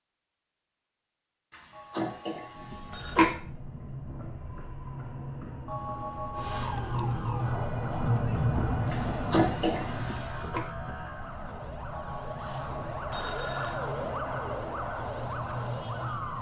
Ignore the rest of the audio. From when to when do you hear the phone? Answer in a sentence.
You can hear the phone from 1.7 to 3.5 s, from 5.7 to 6.7 s and from 11.9 to 13.8 s.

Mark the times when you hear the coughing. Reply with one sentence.
You can hear the coughing from 1.9 to 3.2 s and from 8.9 to 10.6 s.